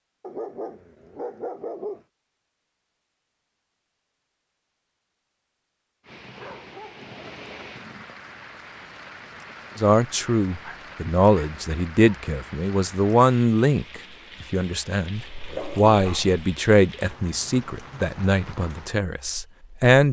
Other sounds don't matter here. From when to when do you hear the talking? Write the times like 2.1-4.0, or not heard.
9.8-20.0.